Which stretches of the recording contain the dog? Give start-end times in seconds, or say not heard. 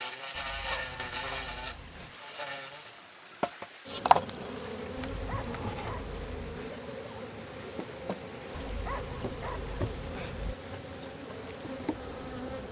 0.3-2.1, 5.0-6.8, 8.5-10.6.